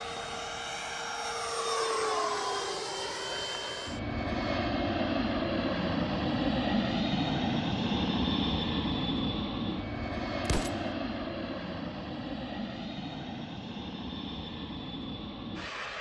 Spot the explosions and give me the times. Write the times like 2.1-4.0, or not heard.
10.4-10.9.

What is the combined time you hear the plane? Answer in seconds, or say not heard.
16 s.